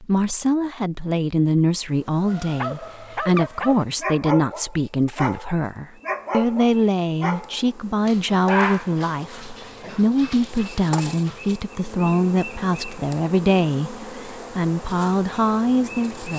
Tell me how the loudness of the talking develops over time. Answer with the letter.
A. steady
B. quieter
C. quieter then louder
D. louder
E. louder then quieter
A.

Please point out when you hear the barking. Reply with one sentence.
You can hear the barking from 2.2 to 11.6 s.